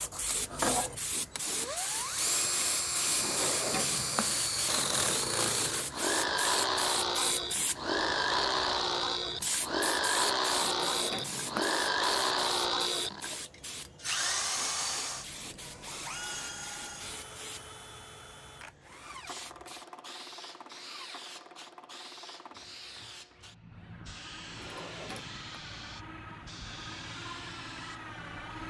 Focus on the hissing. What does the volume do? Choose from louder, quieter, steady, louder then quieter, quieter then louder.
quieter.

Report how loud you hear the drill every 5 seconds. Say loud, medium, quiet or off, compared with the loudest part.
loud, loud, loud, quiet, quiet, quiet.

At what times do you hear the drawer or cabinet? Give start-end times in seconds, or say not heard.
3.0-4.4, 10.4-11.7, 24.4-25.6.